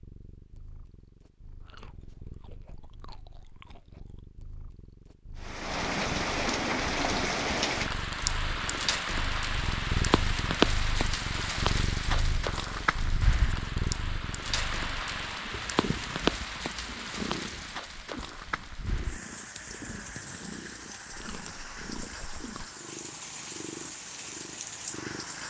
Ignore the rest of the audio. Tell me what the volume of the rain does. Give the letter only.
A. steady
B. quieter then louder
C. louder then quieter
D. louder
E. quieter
E.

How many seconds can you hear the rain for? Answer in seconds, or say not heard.
20 s.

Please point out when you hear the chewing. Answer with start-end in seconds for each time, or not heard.
1.6-4.2, 21.1-22.7.